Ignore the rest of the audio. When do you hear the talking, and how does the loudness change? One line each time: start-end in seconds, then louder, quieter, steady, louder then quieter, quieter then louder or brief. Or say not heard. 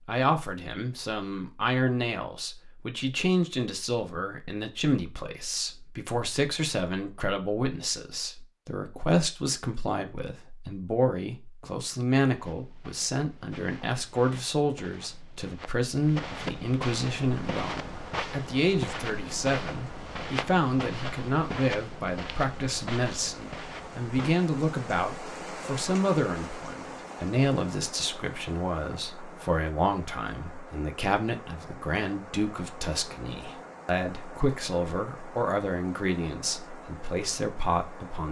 0.1-38.2 steady.